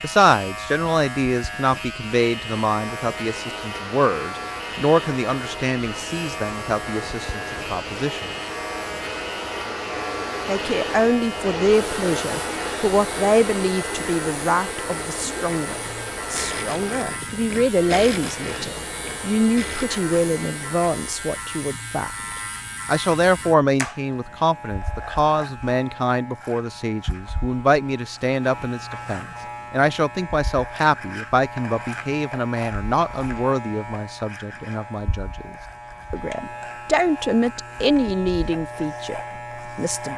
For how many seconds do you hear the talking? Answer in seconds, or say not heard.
37 s.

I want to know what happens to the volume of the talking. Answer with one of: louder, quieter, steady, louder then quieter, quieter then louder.
steady.